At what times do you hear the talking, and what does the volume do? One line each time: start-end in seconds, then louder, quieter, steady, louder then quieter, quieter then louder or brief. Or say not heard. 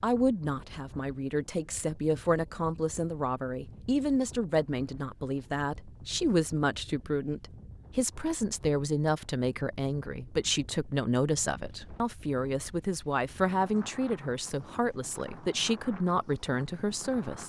0.0-17.4 steady.